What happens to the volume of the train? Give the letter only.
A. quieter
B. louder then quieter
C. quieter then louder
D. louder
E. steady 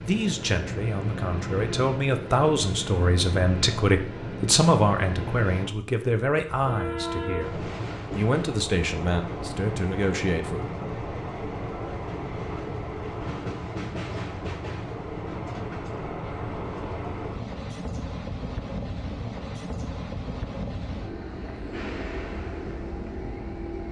E.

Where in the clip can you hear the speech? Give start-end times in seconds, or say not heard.
0.0-10.7.